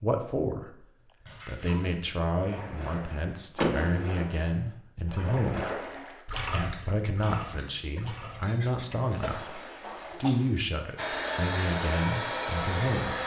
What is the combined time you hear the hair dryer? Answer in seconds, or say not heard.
2 s.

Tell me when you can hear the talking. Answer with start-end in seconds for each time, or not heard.
0.0-0.8, 1.4-5.8, 6.5-9.6, 10.2-13.2.